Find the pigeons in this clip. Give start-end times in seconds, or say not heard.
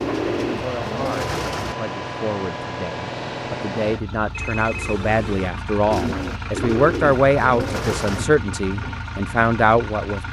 0.0-1.8, 5.8-8.2.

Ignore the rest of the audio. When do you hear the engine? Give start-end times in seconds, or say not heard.
0.0-10.2.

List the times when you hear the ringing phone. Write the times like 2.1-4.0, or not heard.
4.3-5.5.